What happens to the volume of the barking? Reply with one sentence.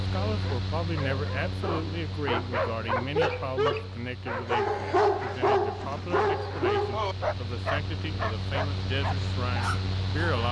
The loudness of the barking goes up, then down.